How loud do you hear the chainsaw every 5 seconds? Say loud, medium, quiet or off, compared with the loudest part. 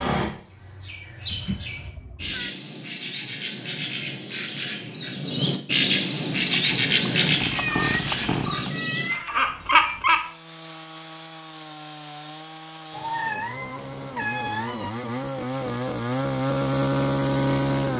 off, medium, quiet, loud.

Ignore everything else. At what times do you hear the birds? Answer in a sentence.
The birds can be heard from 0.0 to 10.2 s.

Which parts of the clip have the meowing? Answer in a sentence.
The meowing can be heard from 1.2 to 2.5 s, from 7.5 to 10.0 s and from 12.9 to 14.9 s.